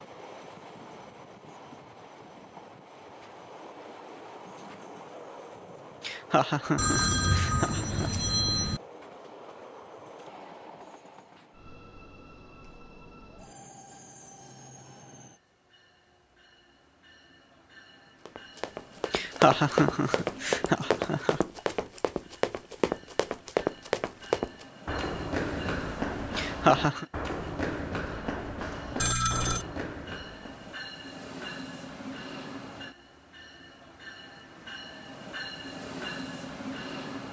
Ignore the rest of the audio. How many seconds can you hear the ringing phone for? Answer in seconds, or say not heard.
3 s.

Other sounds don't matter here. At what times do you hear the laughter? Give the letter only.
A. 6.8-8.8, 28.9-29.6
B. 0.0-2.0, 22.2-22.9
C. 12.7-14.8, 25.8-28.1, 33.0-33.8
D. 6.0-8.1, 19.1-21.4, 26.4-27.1
D.